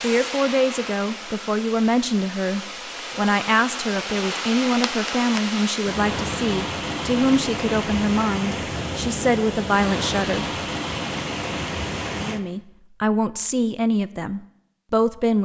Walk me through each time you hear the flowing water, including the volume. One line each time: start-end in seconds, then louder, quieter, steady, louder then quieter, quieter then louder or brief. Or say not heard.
0.0-12.4 louder.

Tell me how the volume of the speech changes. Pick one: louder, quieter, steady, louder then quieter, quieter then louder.
steady.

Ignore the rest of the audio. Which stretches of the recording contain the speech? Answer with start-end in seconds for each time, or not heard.
0.0-10.4, 12.1-15.4.